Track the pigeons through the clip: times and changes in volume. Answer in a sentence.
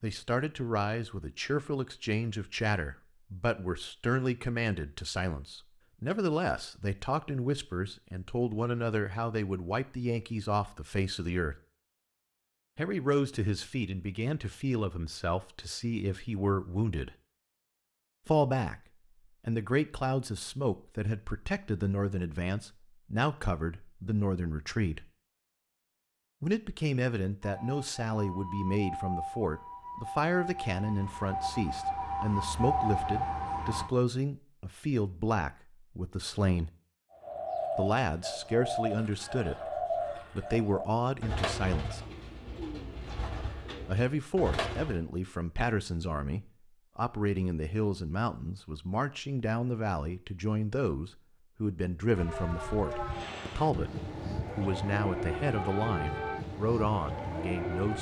The pigeons can be heard from 37.1 to 45.0 s, getting quieter.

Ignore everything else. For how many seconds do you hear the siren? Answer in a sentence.
The siren can be heard for 12 seconds in total.